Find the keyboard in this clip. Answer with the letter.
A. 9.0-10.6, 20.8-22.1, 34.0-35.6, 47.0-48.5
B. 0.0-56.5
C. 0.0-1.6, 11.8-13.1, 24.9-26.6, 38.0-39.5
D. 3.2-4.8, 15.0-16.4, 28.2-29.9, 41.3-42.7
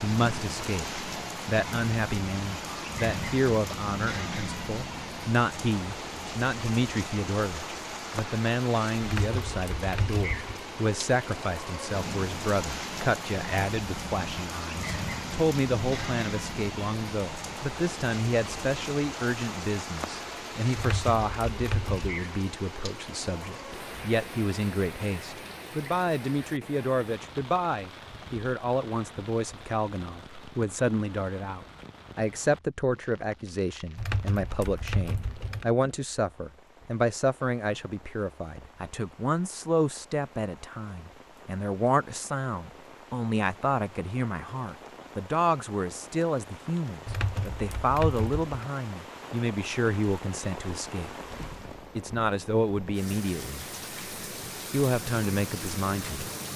A.